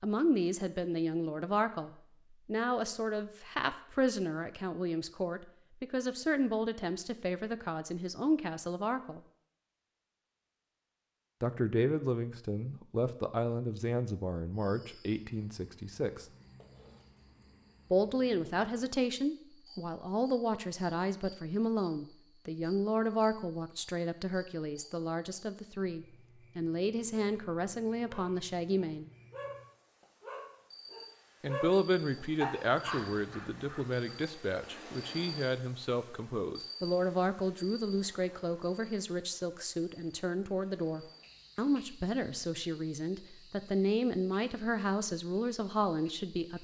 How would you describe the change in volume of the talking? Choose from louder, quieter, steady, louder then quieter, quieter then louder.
steady.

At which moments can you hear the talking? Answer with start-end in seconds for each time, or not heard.
0.0-9.2, 11.4-16.2, 17.9-29.1, 31.4-46.5.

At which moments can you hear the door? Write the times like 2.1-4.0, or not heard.
not heard.